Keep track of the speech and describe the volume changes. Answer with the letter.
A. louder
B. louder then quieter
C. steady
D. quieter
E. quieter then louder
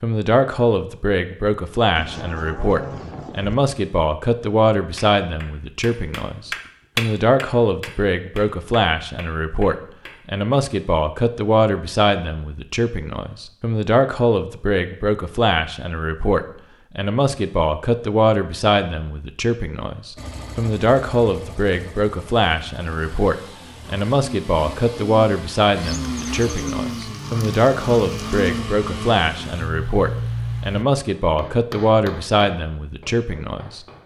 C.